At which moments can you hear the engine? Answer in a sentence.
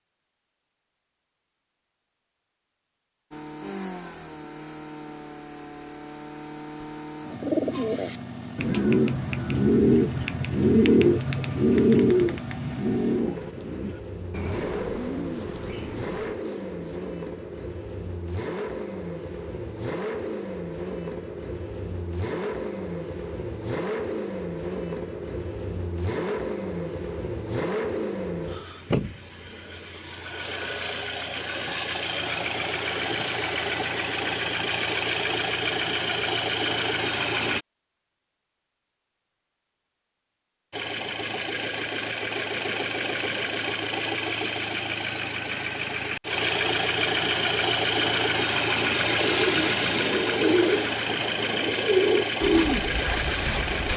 The engine can be heard from 3.3 to 37.6 s and from 40.7 to 53.9 s.